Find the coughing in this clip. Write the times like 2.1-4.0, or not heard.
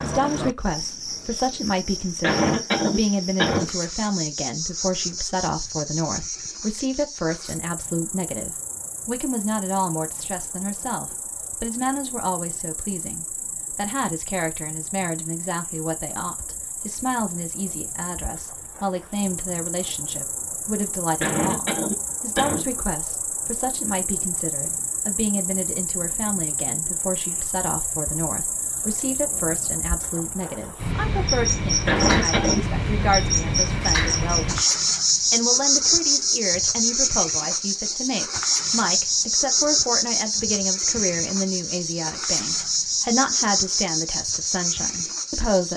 2.2-3.7, 21.2-22.6, 31.9-32.6.